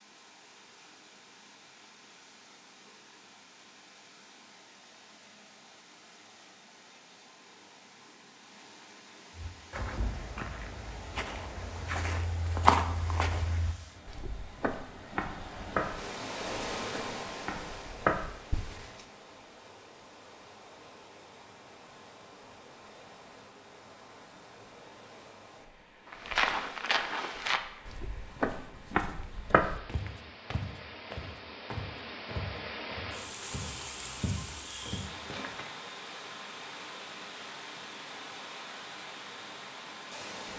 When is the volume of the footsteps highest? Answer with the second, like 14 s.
13 s.